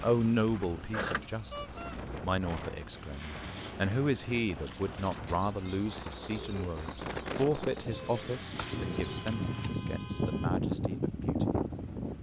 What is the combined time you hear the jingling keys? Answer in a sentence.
You can hear the jingling keys for 3 seconds altogether.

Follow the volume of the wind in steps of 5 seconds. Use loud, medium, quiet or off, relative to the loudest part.
quiet, medium, loud.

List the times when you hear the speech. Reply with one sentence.
You can hear the speech from 0.0 to 11.4 s.